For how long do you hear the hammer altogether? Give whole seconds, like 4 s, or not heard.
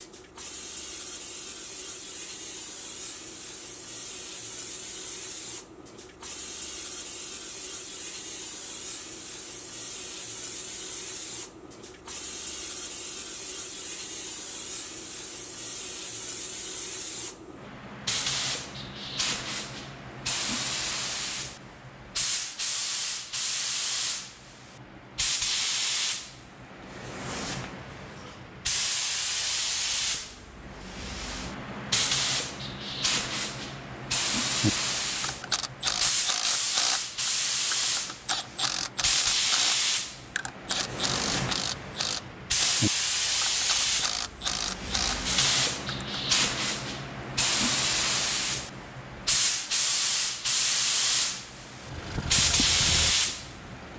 not heard.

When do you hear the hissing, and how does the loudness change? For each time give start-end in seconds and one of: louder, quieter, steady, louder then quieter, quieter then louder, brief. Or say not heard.
0.0-53.9 louder.